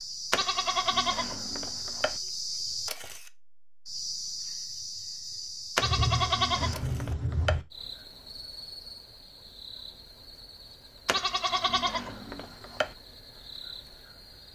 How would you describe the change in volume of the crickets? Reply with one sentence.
The loudness of the crickets goes down.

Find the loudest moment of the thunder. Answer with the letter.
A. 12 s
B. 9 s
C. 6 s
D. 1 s
C.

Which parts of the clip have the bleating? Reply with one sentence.
You can hear the bleating from 0.3 to 2.1 s, from 5.8 to 7.6 s and from 11.1 to 12.9 s.